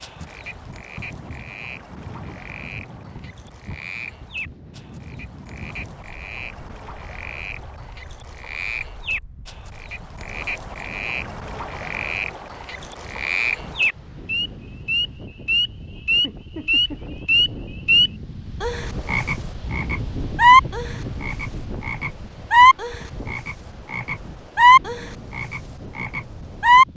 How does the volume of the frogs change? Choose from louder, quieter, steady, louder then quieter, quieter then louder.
louder.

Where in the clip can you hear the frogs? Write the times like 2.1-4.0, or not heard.
0.0-26.9.